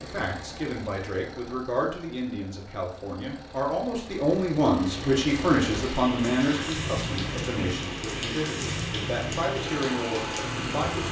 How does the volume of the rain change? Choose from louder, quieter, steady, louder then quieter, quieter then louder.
steady.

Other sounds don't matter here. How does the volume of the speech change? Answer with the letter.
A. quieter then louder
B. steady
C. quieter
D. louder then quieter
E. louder
D.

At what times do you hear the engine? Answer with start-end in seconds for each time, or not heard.
0.0-11.0.